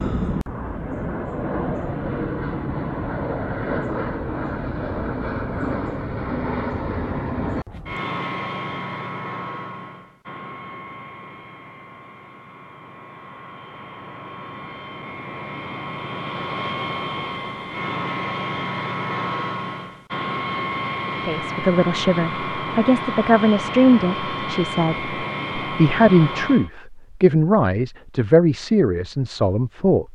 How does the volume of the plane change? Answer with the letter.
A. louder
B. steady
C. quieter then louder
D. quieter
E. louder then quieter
C.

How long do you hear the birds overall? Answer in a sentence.
You can't hear the birds here.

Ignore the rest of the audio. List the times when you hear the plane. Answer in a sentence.
You can hear the plane from 0.0 to 26.7 s.